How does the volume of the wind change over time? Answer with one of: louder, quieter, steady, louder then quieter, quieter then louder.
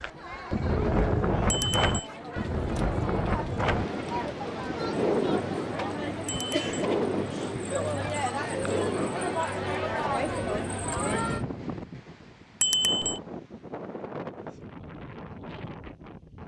quieter.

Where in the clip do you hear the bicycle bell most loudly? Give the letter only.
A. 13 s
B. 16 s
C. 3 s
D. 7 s
A.